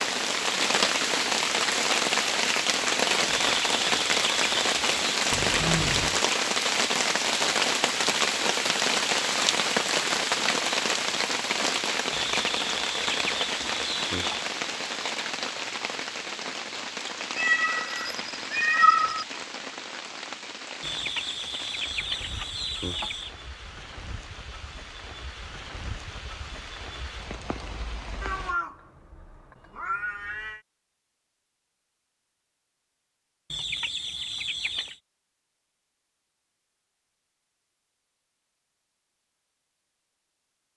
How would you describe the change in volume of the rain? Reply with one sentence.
The loudness of the rain goes down.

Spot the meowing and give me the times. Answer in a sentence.
The meowing can be heard from 5.3 to 6.2 s, from 17.4 to 19.2 s and from 28.2 to 30.6 s.